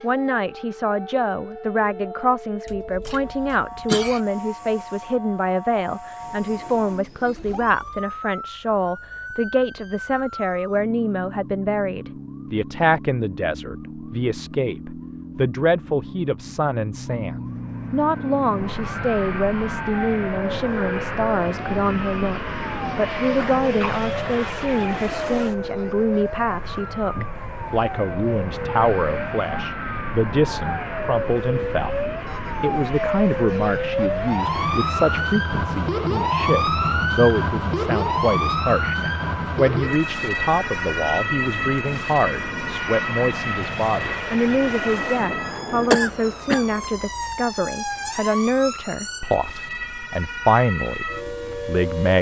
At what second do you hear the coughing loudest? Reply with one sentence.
The loudest moment of the coughing is at 46 seconds.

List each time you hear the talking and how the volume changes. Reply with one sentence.
You can hear the talking from 0.0 to 52.1 s, at a steady volume.